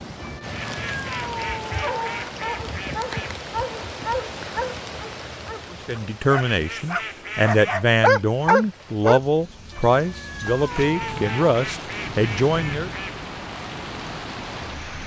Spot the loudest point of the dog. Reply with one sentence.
The loudest moment of the dog is at 8 seconds.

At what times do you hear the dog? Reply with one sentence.
The dog can be heard from 1.8 to 9.2 s.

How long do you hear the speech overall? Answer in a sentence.
You can hear the speech for 7 seconds altogether.